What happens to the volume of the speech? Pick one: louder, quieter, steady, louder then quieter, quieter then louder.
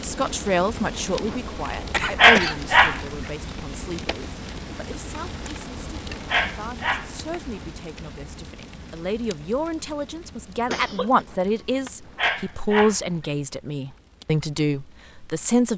quieter then louder.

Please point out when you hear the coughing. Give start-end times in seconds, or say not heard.
1.9-2.5, 10.7-11.2.